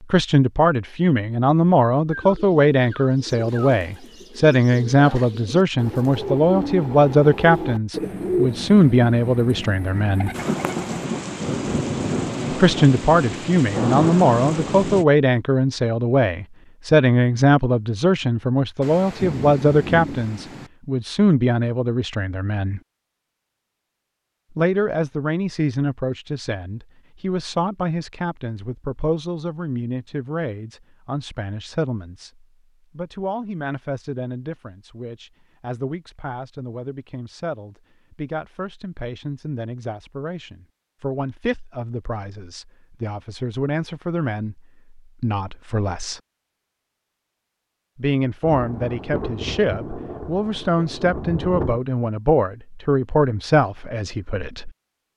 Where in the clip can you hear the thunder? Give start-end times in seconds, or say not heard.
10.3-15.1, 18.8-20.7, 48.5-51.8.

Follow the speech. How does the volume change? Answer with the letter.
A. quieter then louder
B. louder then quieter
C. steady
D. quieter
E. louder
A.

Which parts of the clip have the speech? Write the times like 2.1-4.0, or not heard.
0.1-10.3, 12.5-22.8, 24.6-46.2, 48.0-54.7.